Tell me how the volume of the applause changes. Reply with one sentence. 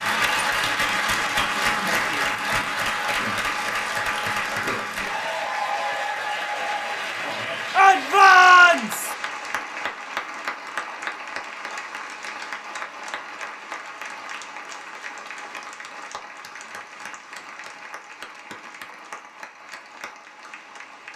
The loudness of the applause goes down.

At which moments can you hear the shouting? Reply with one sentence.
The shouting can be heard from 7.8 to 9.1 s.